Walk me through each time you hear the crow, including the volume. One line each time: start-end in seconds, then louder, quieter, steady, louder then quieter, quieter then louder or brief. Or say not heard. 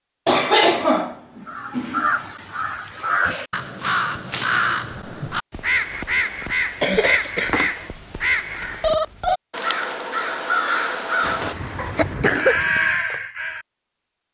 1.4-13.7 steady.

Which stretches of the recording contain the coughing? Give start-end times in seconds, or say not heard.
0.2-2.1, 6.8-7.7, 11.2-12.7.